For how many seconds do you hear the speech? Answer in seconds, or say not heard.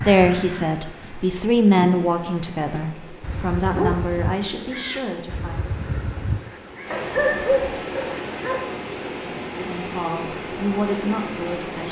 8 s.